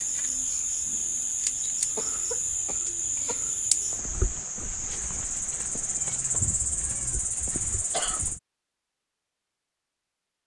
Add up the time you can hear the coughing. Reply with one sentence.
The coughing can be heard for 2 seconds in total.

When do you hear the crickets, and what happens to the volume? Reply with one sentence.
The crickets can be heard from 0.0 to 8.4 s, at a steady volume.